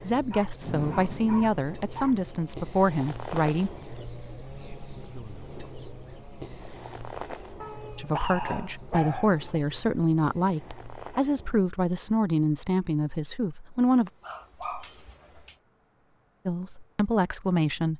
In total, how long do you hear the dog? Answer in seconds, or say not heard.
5 s.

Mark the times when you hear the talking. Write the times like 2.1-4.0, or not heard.
0.0-3.7, 8.0-14.1, 16.4-17.9.